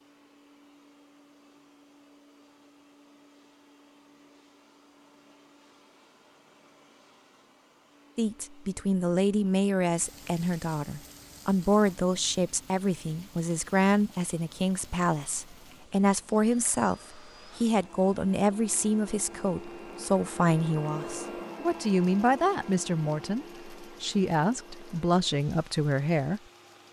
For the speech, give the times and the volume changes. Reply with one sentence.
You can hear the speech from 8.2 to 26.8 s, at a steady volume.